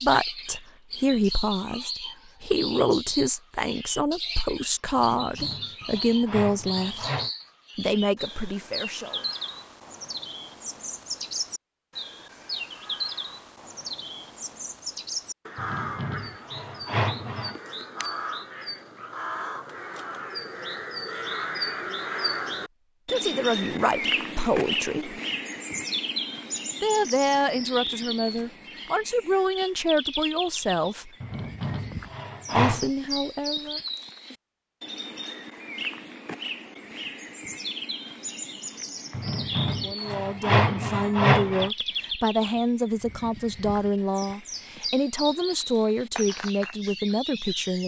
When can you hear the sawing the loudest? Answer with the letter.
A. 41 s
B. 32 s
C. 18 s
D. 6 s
A.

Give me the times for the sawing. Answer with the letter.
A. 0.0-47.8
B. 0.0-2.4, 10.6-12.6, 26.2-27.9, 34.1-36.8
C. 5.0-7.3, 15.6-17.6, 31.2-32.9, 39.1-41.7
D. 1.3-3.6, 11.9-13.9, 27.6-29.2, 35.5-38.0
C.